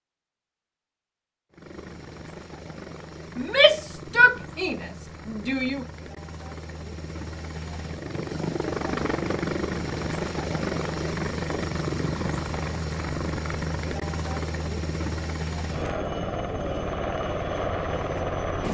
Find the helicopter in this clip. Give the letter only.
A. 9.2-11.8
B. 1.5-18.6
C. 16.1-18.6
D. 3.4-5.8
B.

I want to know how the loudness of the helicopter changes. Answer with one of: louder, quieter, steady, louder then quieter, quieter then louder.
louder.